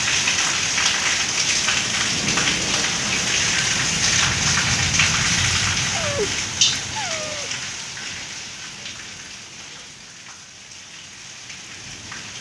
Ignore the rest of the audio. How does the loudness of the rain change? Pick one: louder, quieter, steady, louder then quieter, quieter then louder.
quieter.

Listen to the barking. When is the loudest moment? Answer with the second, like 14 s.
6 s.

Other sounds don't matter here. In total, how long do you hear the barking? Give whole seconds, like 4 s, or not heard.
2 s.